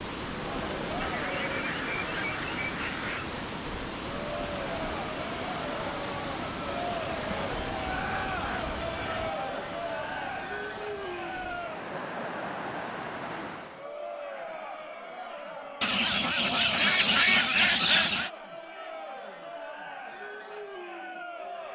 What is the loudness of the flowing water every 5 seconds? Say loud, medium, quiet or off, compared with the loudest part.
loud, loud, medium, off, off.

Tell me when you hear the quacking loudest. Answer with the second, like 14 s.
17 s.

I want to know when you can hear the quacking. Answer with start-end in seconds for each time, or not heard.
1.0-3.3, 7.3-9.3, 15.8-18.3.